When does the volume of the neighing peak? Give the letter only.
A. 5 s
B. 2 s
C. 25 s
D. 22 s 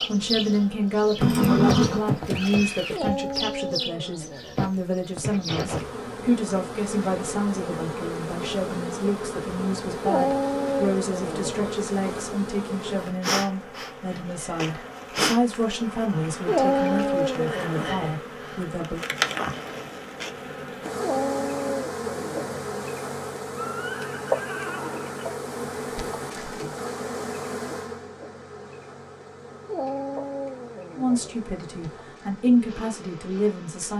B.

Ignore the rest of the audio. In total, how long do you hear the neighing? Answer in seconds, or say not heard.
4 s.